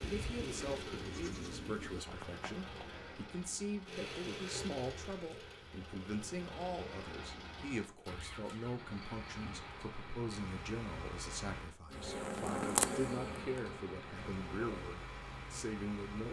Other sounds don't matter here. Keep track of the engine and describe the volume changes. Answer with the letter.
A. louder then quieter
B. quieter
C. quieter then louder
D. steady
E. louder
D.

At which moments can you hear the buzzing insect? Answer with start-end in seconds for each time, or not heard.
11.9-14.9.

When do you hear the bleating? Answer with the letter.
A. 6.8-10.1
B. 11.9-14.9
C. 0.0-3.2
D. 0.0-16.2
C.